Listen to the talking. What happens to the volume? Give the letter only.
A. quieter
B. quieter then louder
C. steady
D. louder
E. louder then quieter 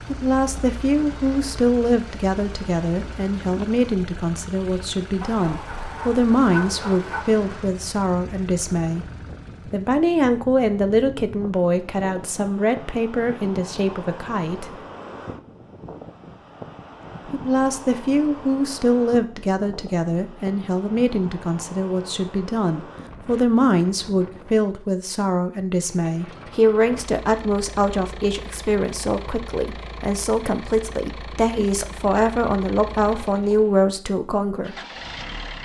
C.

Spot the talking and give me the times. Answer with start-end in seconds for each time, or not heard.
0.0-14.8, 17.2-34.8.